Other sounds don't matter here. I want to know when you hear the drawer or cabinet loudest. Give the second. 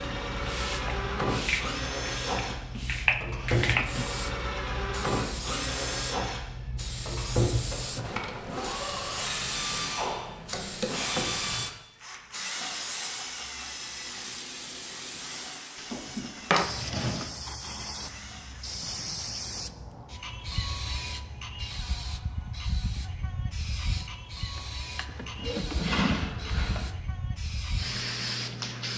26 s.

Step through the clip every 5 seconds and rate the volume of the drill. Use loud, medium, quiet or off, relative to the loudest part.
loud, loud, loud, quiet, off, off.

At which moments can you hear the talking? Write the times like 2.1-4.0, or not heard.
not heard.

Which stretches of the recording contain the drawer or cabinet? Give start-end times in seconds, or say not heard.
2.4-4.2, 15.8-17.3, 24.6-26.9.